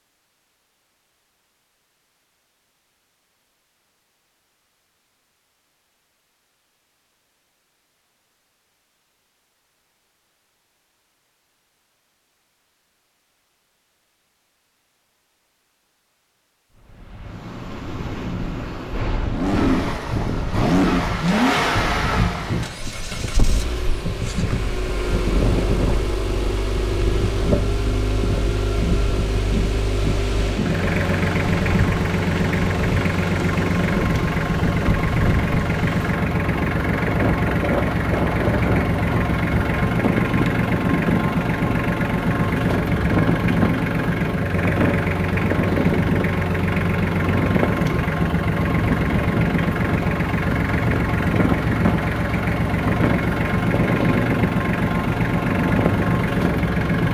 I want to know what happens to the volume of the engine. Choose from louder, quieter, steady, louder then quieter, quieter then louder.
steady.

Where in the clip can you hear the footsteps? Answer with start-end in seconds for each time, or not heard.
not heard.